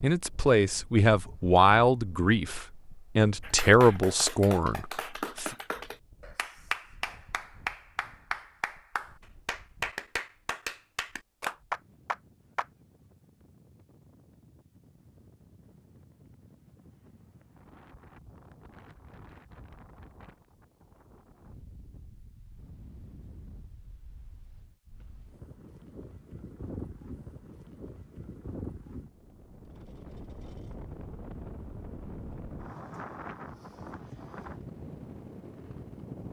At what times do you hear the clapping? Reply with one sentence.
The clapping can be heard from 3.4 to 12.7 s.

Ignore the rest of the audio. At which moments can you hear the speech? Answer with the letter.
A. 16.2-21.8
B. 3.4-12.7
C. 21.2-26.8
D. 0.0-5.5
D.